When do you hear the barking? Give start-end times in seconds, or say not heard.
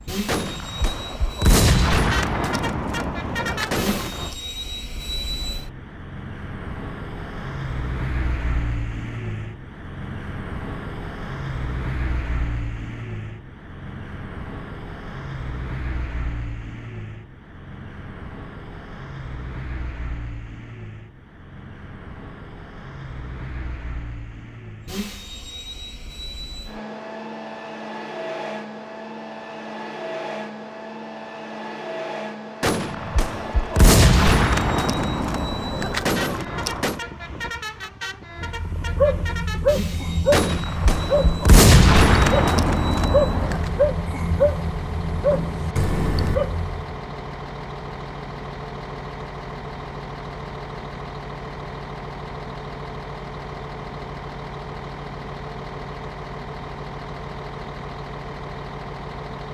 38.4-46.8.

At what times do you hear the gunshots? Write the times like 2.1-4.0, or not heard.
0.2-4.3, 32.6-37.0, 40.3-43.6.